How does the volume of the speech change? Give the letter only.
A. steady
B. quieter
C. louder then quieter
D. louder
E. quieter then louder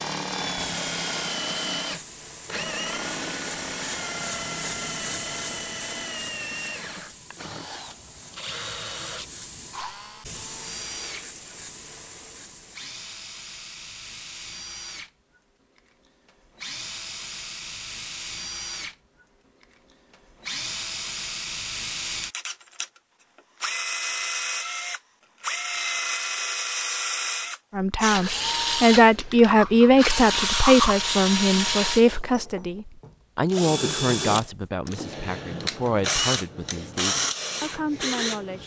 B.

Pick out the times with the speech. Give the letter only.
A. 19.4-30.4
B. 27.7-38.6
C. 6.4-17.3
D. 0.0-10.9
B.